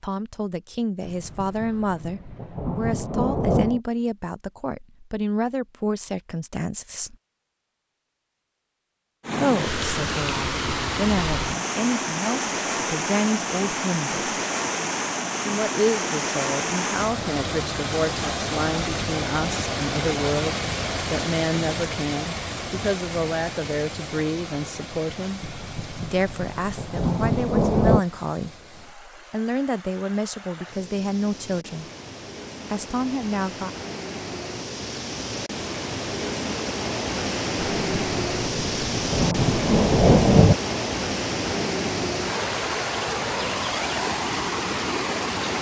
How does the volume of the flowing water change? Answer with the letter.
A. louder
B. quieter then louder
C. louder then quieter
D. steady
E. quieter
B.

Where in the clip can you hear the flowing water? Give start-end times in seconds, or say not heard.
9.2-45.5.